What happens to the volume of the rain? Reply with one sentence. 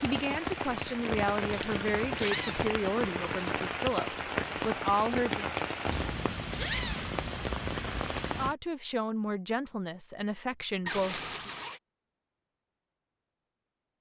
The volume of the rain stays about the same.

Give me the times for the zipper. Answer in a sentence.
You can hear the zipper from 1.4 to 2.8 s, from 5.8 to 7.2 s and from 10.8 to 11.8 s.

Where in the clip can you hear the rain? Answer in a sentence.
The rain can be heard from 0.0 to 8.6 s.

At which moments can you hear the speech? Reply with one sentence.
The speech can be heard from 0.0 to 5.5 s and from 8.3 to 11.5 s.